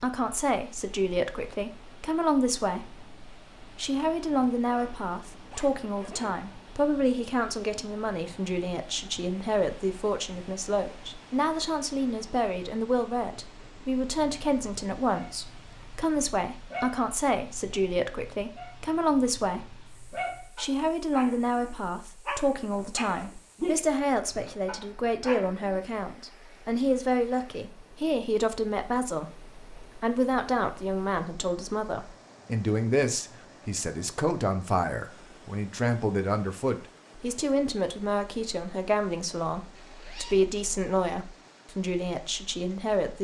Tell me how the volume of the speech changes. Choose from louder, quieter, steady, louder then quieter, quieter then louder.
steady.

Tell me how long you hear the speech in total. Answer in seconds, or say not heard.
43 s.